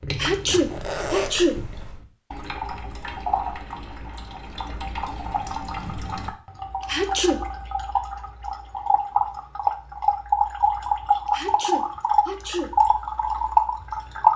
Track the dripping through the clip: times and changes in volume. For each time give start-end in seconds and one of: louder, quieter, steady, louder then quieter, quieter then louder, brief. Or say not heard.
0.0-14.3 louder.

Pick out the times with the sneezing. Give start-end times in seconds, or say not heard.
0.1-1.6, 6.8-7.4, 11.3-12.7.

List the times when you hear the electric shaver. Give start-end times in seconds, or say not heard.
not heard.